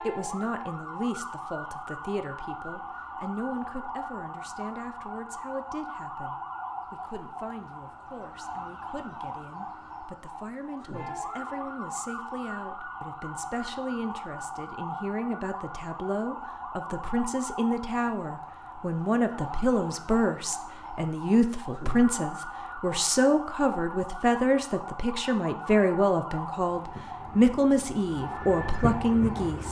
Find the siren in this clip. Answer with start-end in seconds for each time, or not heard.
0.0-29.6.